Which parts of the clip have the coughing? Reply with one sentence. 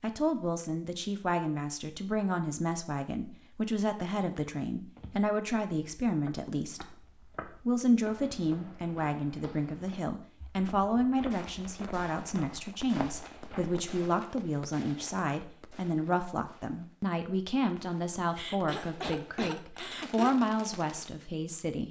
You can hear the coughing from 18.3 to 20.3 s.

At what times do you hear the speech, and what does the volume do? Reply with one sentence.
The speech can be heard from 0.0 to 21.8 s, at a steady volume.